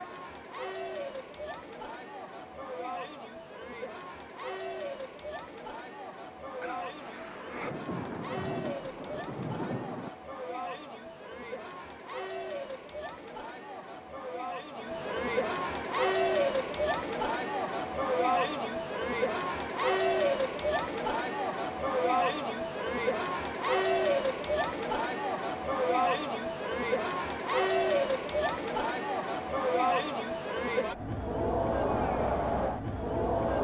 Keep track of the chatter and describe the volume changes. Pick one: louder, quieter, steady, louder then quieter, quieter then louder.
louder.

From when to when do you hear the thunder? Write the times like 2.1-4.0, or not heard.
6.6-10.1.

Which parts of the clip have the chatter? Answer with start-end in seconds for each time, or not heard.
0.0-33.5.